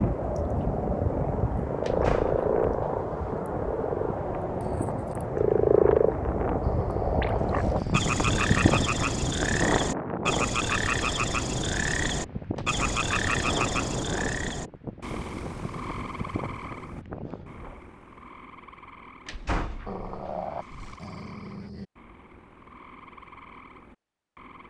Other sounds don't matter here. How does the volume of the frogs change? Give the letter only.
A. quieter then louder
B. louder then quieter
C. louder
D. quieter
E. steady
D.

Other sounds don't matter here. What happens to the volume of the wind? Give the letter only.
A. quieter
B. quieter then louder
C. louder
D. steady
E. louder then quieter
E.